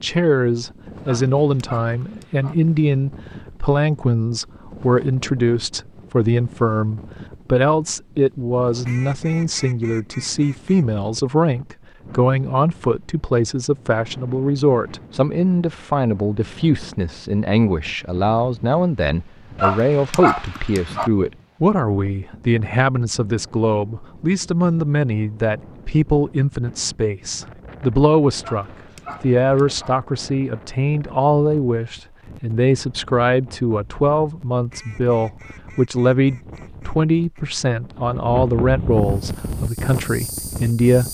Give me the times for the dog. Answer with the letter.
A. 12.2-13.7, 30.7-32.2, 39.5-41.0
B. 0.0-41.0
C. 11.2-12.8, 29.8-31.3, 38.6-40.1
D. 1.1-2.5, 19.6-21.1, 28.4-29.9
D.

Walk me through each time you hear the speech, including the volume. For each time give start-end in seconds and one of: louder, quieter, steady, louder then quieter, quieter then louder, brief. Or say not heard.
0.0-41.0 steady.